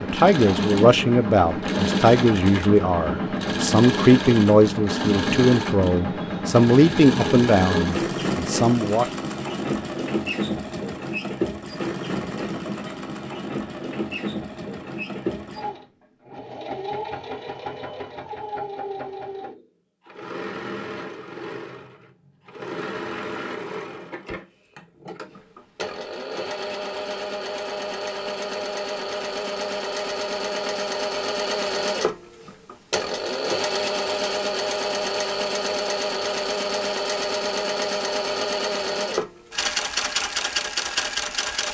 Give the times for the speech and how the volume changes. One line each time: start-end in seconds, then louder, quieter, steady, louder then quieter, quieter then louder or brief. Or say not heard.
0.0-9.1 steady.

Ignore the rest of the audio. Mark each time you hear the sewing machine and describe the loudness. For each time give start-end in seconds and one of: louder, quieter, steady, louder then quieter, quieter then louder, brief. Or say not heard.
0.0-41.6 quieter then louder.